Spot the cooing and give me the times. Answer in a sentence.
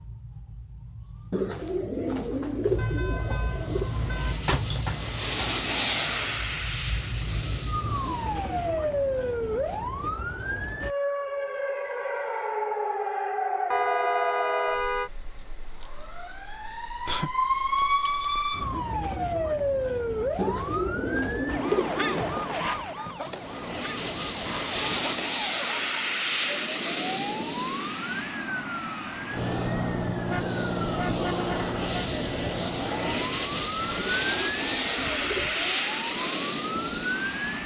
You can hear the cooing from 1.3 to 3.9 s, from 20.4 to 22.6 s and from 34.0 to 35.9 s.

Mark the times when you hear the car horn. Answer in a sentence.
The car horn can be heard from 2.8 to 4.3 s, from 13.7 to 15.1 s and from 30.3 to 32.0 s.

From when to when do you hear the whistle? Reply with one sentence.
The whistle can't be heard in this clip.